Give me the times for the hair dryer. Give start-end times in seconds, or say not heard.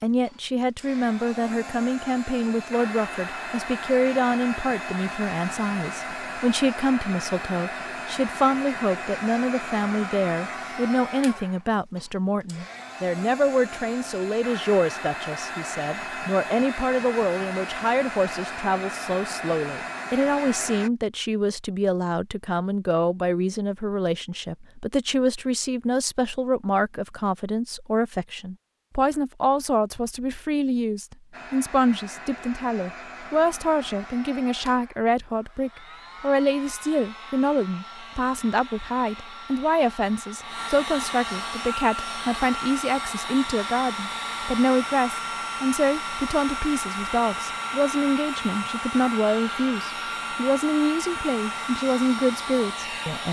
0.1-20.9, 31.3-53.2.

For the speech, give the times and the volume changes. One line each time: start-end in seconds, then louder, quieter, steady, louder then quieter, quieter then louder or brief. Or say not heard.
0.0-53.2 steady.